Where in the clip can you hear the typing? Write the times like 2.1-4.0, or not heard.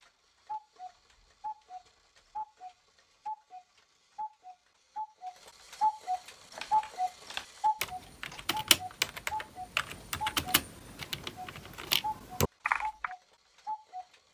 6.3-13.2.